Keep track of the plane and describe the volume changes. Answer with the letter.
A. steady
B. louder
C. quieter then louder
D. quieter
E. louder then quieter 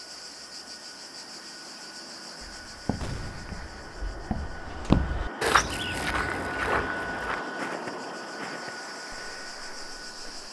E.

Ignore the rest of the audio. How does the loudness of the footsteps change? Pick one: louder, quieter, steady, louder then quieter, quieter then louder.
louder then quieter.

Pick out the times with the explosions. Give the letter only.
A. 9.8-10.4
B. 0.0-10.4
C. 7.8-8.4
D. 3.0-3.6
D.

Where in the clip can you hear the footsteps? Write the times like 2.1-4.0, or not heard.
2.5-10.4.